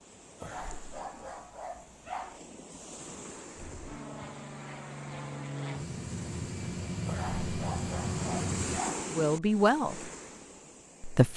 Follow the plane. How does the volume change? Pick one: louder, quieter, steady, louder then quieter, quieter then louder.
louder.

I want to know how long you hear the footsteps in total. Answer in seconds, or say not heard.
not heard.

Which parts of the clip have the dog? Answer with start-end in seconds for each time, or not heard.
0.4-2.4, 7.0-9.1.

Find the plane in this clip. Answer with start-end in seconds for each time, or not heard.
3.5-8.8.